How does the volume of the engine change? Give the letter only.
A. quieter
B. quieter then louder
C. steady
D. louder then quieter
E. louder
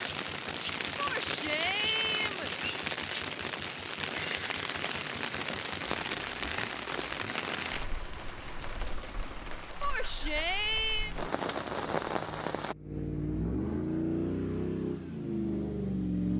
E.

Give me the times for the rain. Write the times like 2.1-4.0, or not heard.
0.0-12.8.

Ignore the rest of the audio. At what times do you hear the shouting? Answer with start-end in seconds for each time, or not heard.
0.9-2.5, 9.8-11.2.